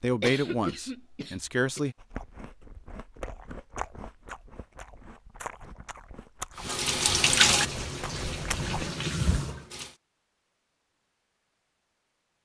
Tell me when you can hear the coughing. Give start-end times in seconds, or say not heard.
0.2-1.9.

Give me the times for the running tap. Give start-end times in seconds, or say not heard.
6.5-9.9.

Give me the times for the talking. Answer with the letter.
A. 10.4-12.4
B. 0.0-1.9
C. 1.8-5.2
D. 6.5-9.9
B.